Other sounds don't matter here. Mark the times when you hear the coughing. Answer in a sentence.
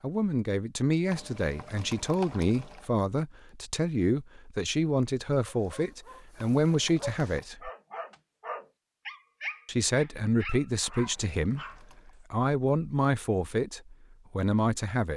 The coughing can't be heard in this clip.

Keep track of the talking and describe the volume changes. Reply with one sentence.
The loudness of the talking stays about the same.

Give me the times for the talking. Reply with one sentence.
The talking can be heard from 0.0 to 7.7 s and from 9.7 to 15.1 s.